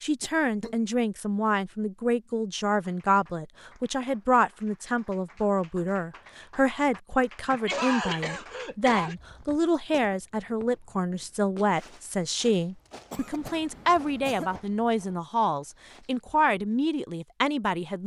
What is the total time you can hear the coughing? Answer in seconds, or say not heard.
4 s.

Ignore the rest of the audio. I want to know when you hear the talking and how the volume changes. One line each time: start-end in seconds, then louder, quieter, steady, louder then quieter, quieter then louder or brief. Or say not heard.
0.0-18.0 steady.